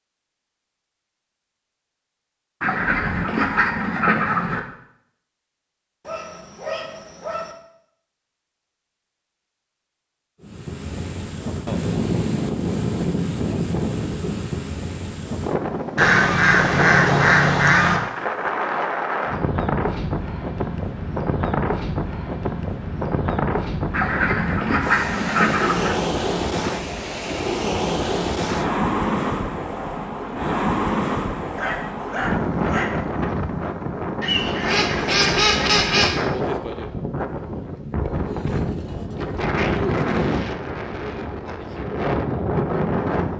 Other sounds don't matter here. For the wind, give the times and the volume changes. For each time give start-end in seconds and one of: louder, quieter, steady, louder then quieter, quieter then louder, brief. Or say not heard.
10.4-43.3 steady.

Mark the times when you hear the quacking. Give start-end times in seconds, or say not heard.
2.6-4.6, 15.9-18.0, 23.9-25.9, 34.2-36.2.